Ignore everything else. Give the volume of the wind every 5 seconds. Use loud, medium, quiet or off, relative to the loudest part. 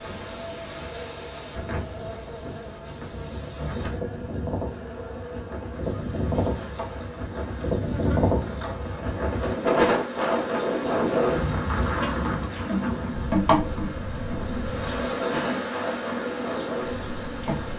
medium, loud, loud, medium.